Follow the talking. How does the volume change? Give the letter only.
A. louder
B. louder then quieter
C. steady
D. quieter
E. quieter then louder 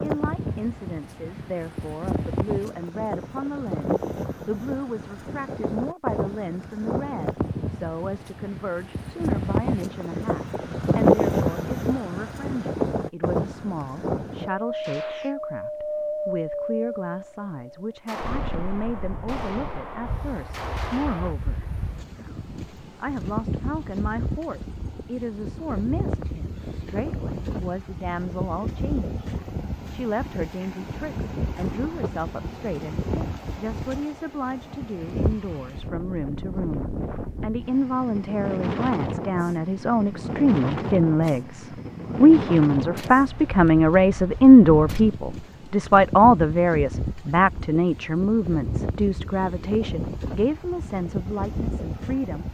A.